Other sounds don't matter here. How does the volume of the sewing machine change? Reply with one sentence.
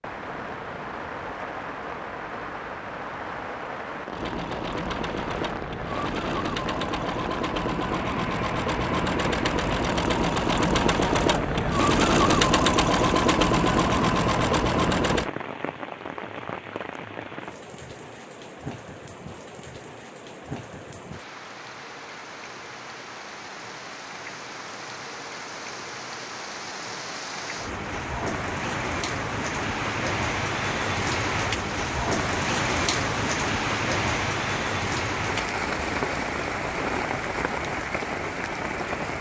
The loudness of the sewing machine goes up.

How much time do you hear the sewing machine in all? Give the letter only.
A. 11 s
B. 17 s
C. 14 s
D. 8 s
A.